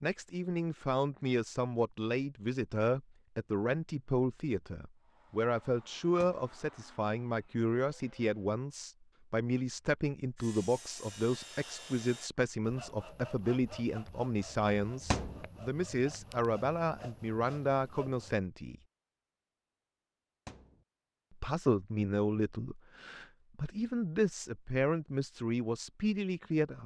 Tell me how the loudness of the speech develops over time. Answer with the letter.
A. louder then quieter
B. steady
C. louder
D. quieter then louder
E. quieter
B.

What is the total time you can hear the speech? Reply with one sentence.
The speech can be heard for 24 seconds in total.